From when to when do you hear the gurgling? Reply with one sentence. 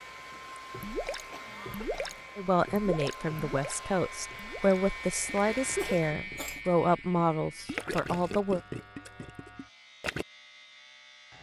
You can hear the gurgling from 0.6 to 10.2 s.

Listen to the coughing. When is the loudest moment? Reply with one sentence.
The loudest moment of the coughing is at 6 seconds.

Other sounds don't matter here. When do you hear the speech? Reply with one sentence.
You can hear the speech from 2.4 to 8.6 s.